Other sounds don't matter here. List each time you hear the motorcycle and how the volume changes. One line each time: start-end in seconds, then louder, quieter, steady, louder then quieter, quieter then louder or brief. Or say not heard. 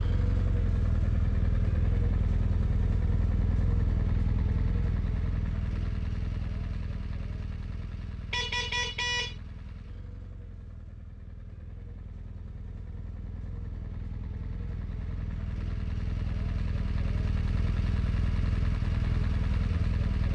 0.0-20.3 quieter then louder.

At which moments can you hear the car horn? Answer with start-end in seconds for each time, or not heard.
8.3-9.3.